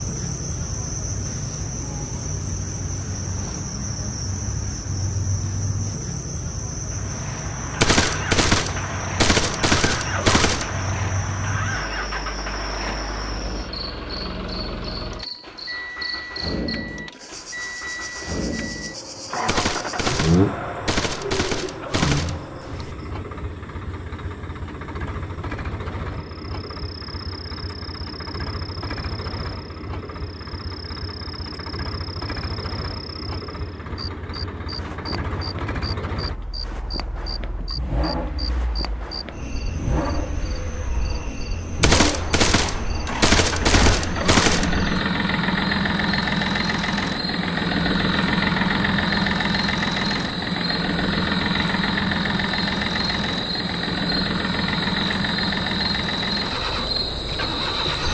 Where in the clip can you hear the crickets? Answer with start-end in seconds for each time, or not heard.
0.0-58.0.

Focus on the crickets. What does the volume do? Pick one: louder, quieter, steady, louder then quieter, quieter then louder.
quieter then louder.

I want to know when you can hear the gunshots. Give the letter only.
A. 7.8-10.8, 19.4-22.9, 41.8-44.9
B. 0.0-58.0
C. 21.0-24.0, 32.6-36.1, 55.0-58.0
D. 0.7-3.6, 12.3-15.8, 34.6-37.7
A.